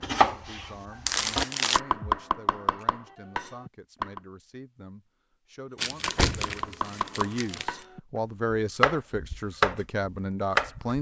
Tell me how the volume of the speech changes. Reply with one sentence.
The volume of the speech goes up.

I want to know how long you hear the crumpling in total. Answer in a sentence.
You can hear the crumpling for 3 seconds altogether.